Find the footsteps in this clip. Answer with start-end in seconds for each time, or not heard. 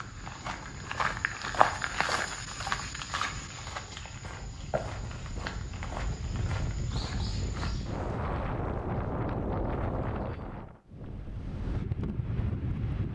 0.0-8.2.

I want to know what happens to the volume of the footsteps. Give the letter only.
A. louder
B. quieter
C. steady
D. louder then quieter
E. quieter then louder
B.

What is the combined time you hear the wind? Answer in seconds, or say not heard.
13 s.